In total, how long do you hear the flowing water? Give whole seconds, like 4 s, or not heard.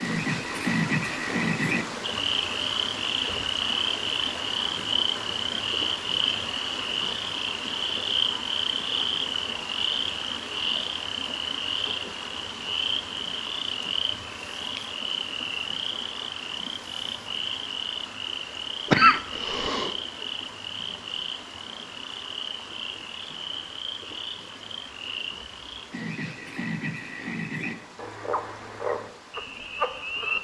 30 s.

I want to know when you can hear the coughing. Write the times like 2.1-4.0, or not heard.
18.9-19.9.